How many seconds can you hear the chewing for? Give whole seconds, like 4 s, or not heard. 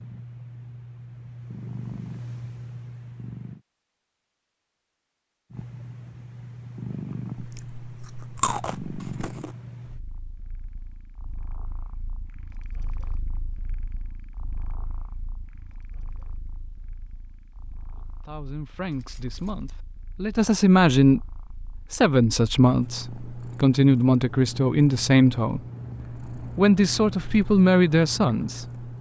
2 s.